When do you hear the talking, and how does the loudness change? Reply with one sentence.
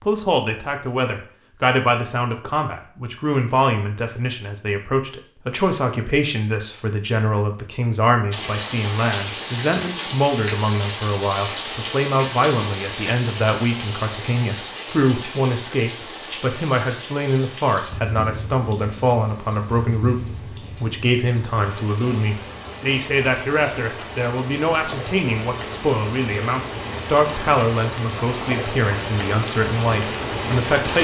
You can hear the talking from 0.0 to 30.9 s, at a steady volume.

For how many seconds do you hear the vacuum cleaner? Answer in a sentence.
The vacuum cleaner can't be heard in this clip.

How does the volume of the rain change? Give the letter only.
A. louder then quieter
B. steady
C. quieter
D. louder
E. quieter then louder
E.